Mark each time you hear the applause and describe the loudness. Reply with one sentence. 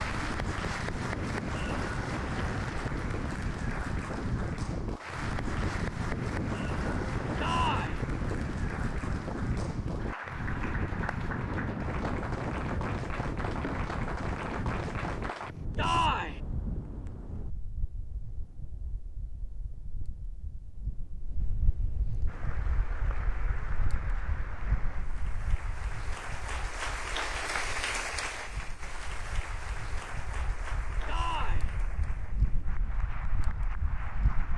You can hear the applause from 0.0 to 15.6 s, at a steady volume; and from 22.2 to 34.5 s, getting louder then quieter.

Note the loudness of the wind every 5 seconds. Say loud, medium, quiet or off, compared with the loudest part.
loud, loud, loud, medium, medium, quiet, medium.